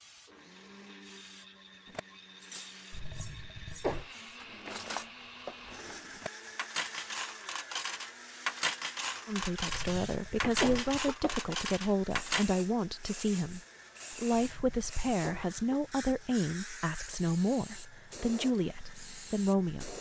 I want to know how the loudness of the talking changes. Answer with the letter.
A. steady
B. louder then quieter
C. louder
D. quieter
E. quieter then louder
A.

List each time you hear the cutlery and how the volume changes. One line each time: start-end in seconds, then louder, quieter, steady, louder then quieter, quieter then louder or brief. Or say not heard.
1.9-12.4 louder.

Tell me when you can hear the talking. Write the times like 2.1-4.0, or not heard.
9.2-19.9.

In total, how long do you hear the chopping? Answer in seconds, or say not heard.
not heard.